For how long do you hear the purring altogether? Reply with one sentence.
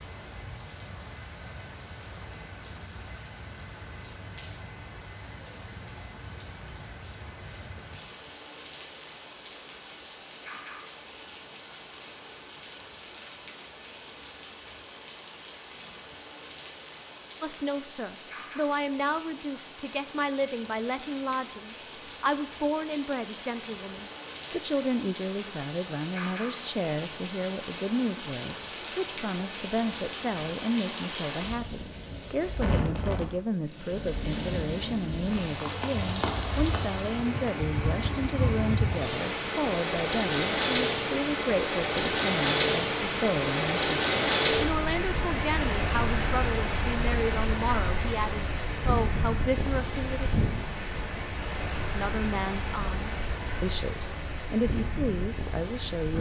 You can't hear the purring here.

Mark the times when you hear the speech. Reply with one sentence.
The speech can be heard from 17.4 to 50.3 s and from 52.0 to 56.1 s.